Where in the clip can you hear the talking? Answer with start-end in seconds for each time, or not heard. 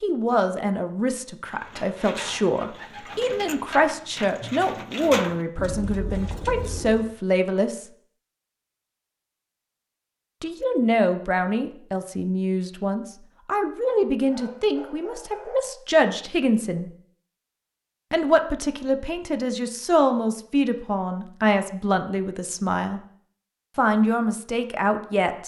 0.0-7.8, 10.4-16.9, 18.1-23.0, 23.8-25.4.